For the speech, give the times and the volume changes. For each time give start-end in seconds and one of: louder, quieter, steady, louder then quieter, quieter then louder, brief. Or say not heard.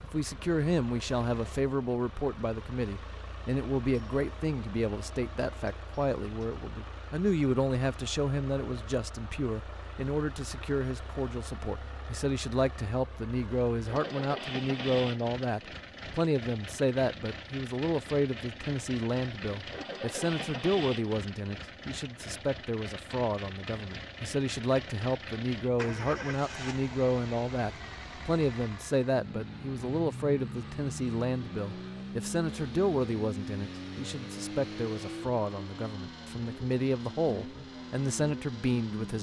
0.0-39.1 steady.